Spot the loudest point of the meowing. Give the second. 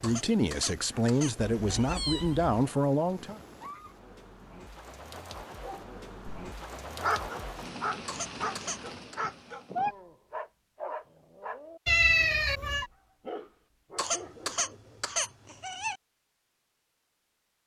12 s.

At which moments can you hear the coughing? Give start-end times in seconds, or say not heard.
0.0-2.0, 8.1-9.2, 13.9-15.9.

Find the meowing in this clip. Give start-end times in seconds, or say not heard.
1.4-2.6, 9.2-9.9, 11.8-12.8.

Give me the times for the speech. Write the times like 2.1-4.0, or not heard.
0.0-3.4.